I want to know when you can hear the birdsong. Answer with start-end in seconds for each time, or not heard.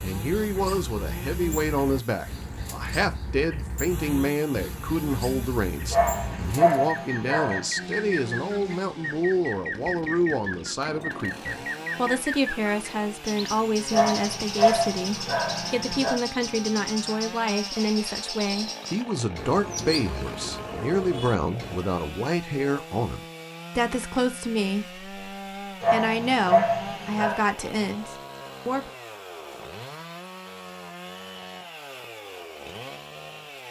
0.0-21.8.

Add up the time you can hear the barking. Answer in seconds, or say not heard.
6 s.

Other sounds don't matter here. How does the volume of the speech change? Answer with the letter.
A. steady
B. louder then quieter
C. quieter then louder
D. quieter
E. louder
A.